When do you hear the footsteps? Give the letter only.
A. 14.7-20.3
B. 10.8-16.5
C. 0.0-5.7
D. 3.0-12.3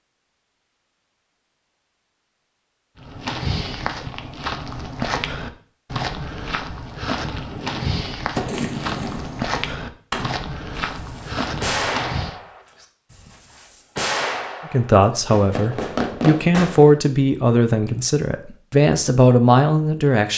D.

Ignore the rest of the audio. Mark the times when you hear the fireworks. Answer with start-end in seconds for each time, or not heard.
7.5-17.0.